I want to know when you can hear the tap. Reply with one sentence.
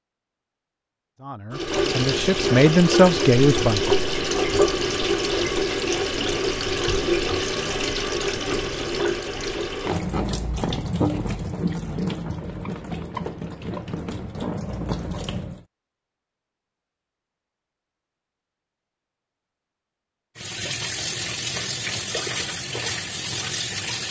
You can hear the tap from 1.5 to 15.7 s and from 20.4 to 24.0 s.